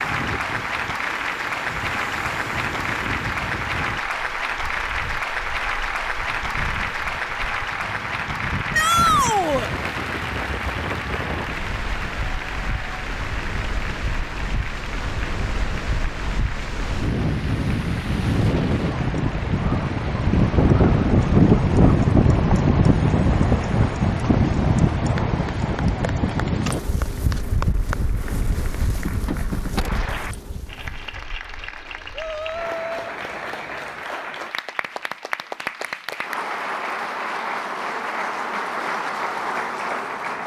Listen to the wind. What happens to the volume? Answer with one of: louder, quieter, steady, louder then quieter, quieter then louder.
louder then quieter.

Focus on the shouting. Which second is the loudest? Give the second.
9 s.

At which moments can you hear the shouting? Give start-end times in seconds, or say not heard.
8.7-9.7, 32.1-33.1.